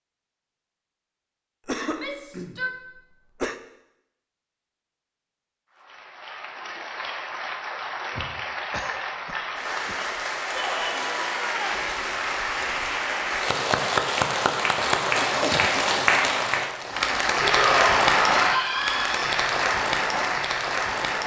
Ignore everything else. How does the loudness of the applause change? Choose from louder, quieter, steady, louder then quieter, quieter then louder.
louder.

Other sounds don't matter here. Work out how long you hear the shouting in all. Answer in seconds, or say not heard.
4 s.